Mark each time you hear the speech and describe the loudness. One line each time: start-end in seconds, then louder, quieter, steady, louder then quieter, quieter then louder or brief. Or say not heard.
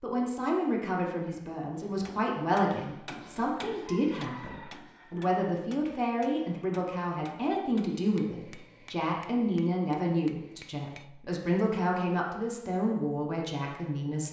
0.0-14.2 steady.